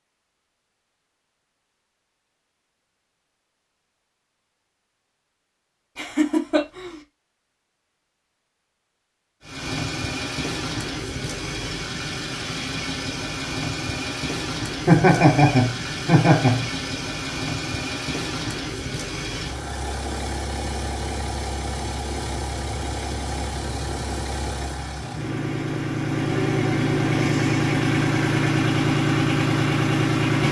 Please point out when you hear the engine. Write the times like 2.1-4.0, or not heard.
9.4-30.4.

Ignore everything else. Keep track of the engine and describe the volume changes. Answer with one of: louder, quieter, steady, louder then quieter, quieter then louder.
louder.